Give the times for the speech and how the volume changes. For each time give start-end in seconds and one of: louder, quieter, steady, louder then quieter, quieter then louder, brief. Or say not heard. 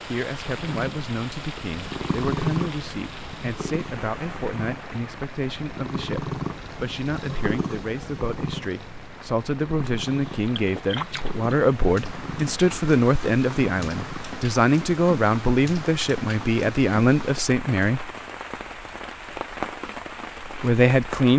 0.0-18.1 louder
20.4-21.3 brief.